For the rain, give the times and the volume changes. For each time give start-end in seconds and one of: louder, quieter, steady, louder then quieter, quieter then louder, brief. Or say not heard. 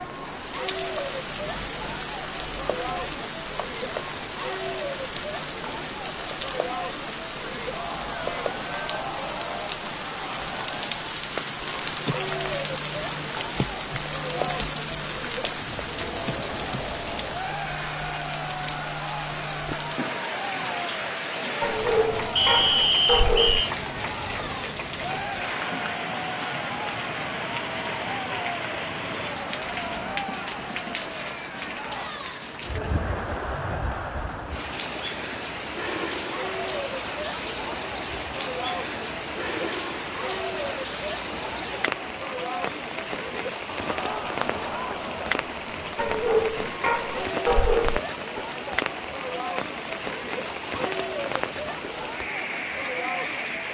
0.0-53.6 steady.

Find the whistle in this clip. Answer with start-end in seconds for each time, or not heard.
22.4-23.6.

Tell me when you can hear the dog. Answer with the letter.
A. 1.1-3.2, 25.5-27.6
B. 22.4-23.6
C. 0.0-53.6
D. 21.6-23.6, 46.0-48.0
D.